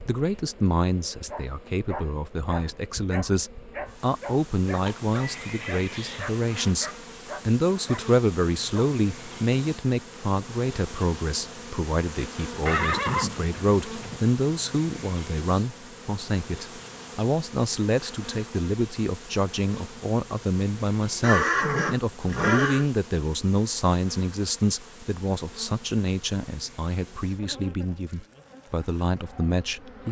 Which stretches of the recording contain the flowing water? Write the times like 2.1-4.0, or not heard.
not heard.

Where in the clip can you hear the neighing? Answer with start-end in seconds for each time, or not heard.
4.8-6.8, 12.7-14.2, 21.2-22.9.